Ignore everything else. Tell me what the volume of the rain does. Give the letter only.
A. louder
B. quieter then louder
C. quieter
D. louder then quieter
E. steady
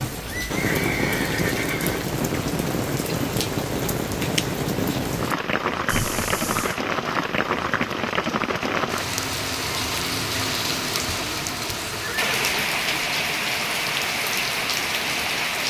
E.